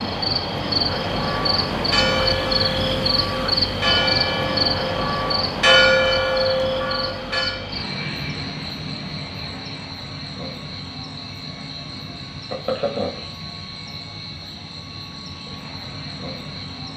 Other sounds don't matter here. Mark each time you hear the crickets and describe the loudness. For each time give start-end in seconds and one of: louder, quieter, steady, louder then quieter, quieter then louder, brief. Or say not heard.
0.0-16.9 quieter.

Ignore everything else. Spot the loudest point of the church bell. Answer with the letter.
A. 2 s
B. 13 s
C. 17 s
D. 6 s
D.